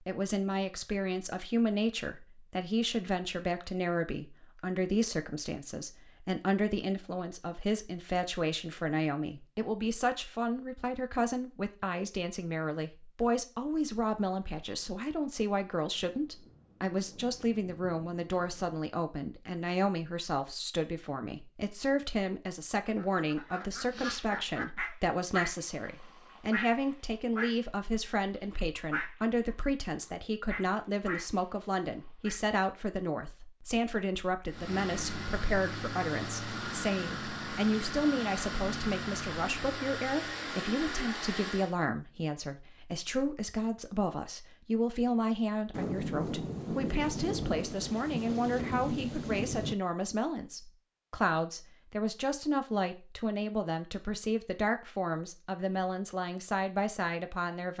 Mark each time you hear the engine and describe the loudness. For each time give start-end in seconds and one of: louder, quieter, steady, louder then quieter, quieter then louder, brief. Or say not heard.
34.5-41.8 steady.